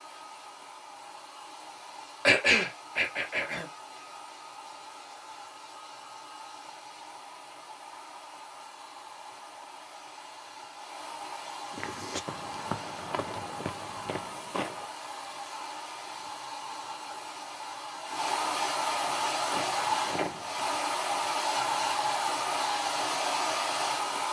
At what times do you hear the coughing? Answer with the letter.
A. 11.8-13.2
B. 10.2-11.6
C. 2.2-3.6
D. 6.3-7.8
C.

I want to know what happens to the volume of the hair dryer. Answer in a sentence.
The volume of the hair dryer goes up.